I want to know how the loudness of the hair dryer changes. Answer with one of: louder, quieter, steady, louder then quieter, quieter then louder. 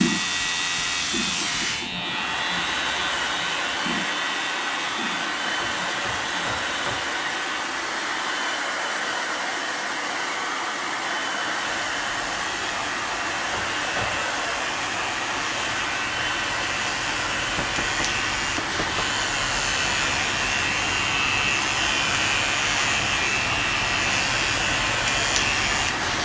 steady.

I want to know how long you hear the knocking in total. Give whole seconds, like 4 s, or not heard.
4 s.